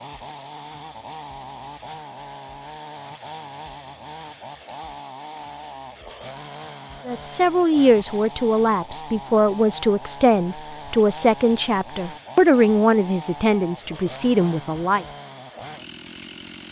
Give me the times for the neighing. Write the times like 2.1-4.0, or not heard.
not heard.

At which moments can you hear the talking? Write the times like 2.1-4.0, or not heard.
7.0-15.1.